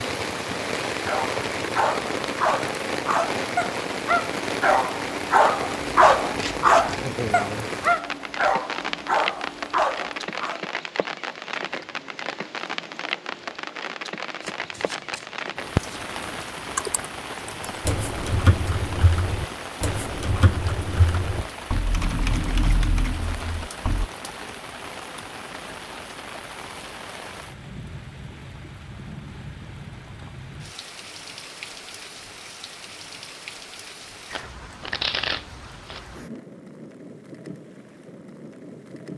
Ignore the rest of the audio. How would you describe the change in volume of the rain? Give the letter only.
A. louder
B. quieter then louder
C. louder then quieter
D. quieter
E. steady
D.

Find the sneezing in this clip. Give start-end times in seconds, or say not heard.
not heard.